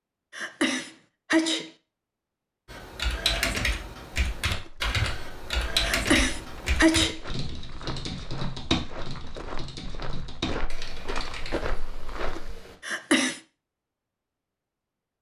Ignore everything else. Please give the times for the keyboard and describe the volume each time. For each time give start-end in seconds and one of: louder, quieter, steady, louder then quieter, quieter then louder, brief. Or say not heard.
2.6-12.8 quieter.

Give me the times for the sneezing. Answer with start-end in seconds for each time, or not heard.
0.3-1.7, 5.8-7.2, 12.8-13.4.